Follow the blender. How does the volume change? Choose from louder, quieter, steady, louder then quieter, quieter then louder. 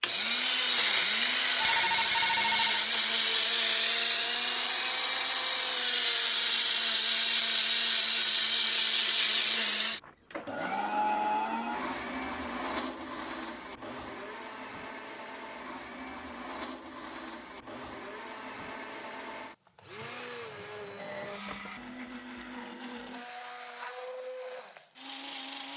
quieter.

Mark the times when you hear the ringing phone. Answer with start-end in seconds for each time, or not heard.
1.6-2.9, 10.0-11.8, 21.4-21.9.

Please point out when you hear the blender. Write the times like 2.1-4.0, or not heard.
0.0-25.7.